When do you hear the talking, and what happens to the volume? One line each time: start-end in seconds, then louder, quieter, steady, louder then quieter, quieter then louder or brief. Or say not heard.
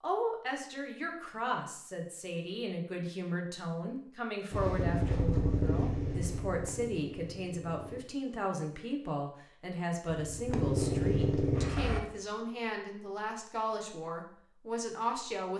0.0-15.5 steady.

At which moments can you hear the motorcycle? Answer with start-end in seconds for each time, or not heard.
4.5-8.0, 10.1-12.0.